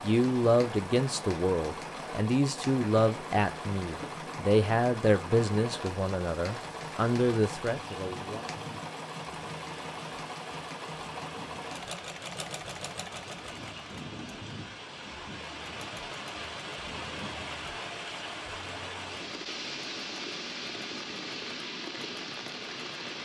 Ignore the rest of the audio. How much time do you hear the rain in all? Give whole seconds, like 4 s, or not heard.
23 s.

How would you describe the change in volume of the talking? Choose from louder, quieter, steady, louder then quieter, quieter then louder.
steady.